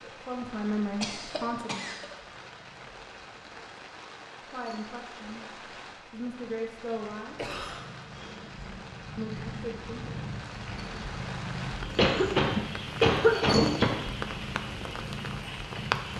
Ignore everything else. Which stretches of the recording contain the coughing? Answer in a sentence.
The coughing can be heard from 1.0 to 2.0 s, from 7.3 to 7.8 s and from 11.9 to 14.0 s.